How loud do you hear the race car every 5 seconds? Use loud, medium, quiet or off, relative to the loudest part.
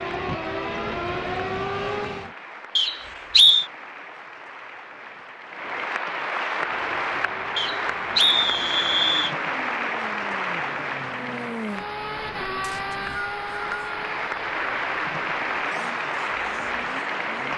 loud, quiet, medium, quiet.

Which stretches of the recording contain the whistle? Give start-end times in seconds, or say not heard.
2.8-3.6, 7.5-9.3, 12.6-13.9.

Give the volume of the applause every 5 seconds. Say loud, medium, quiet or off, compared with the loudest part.
quiet, loud, loud, loud.